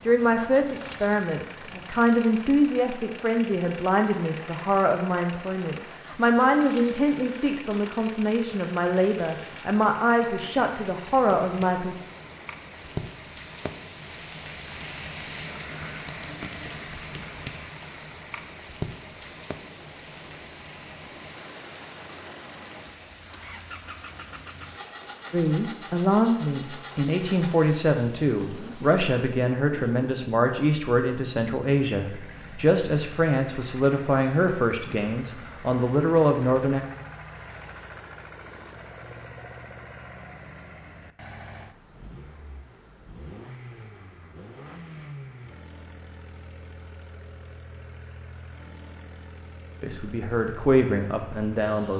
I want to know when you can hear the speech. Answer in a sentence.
You can hear the speech from 0.0 to 12.0 s, from 25.3 to 36.8 s and from 49.8 to 51.9 s.